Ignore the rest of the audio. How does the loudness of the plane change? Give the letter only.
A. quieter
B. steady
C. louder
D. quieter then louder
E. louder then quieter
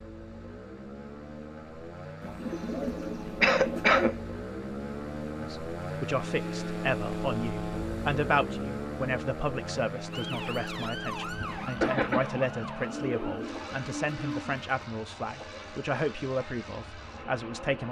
E.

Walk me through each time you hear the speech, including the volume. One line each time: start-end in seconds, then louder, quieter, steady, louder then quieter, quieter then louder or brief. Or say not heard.
5.3-17.8 steady.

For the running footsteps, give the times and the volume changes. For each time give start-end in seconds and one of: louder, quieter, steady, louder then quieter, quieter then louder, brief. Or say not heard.
not heard.